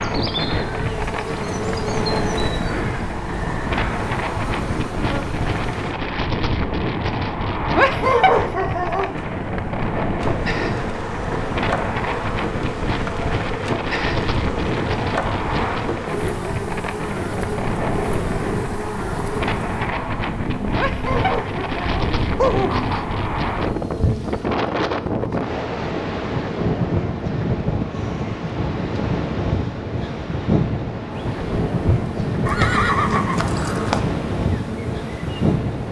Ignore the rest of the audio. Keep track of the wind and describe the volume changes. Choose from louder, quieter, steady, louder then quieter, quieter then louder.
steady.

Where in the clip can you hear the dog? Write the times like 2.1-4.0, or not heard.
7.7-9.2, 20.7-23.1.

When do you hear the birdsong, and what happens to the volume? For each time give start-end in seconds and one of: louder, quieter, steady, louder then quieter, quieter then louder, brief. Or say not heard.
not heard.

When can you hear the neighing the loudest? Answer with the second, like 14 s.
33 s.